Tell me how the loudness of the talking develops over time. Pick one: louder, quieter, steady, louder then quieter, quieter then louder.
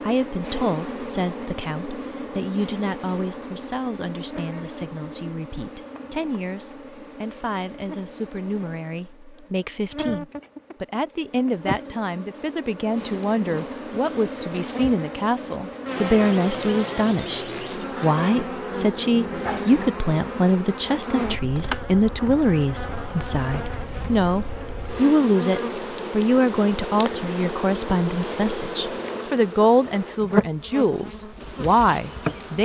louder.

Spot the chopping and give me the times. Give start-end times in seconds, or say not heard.
not heard.